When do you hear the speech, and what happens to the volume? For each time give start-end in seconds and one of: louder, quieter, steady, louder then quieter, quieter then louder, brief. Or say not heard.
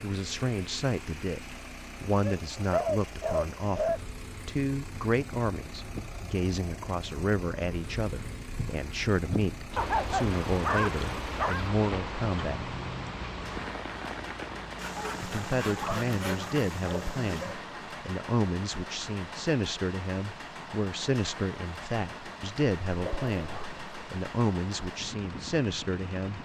0.0-12.7 steady
15.2-26.4 steady.